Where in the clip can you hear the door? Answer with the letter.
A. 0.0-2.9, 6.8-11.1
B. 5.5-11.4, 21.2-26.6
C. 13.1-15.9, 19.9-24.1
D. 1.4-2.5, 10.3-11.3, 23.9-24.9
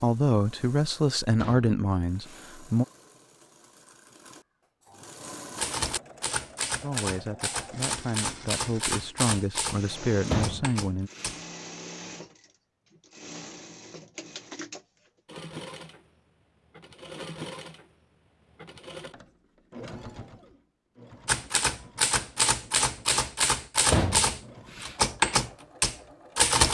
D.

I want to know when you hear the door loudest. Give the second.
24 s.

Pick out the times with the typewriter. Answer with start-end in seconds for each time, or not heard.
5.5-11.4, 21.2-26.6.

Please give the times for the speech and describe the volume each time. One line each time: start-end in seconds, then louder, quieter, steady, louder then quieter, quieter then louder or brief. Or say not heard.
0.0-2.9 brief
6.8-11.1 louder.